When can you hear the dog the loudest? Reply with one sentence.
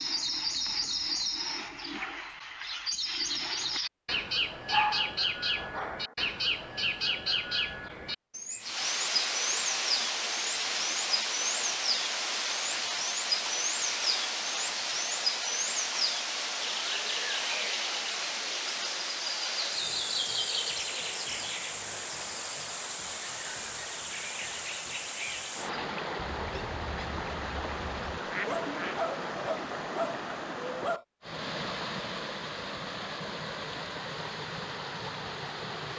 The loudest moment of the dog is at 5 seconds.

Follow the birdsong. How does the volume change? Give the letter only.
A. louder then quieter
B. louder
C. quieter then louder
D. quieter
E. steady
D.